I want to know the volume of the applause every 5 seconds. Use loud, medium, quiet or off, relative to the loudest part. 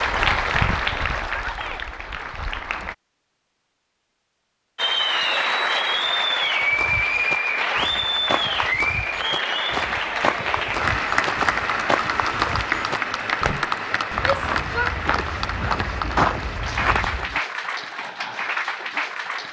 loud, loud, loud, medium.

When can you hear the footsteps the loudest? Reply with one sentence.
The loudest moment of the footsteps is at 16 seconds.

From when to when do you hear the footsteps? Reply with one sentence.
The footsteps can be heard from 6.5 to 17.4 s.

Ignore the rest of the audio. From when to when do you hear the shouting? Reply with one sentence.
The shouting can be heard from 1.4 to 1.9 s and from 14.2 to 14.9 s.